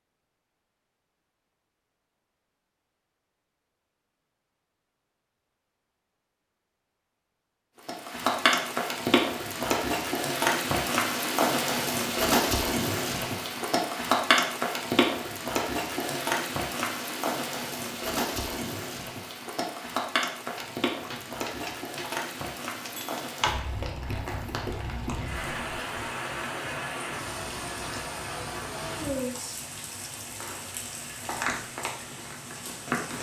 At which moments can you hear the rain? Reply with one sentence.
The rain can be heard from 7.8 to 33.1 s.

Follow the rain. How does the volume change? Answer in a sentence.
The volume of the rain goes down.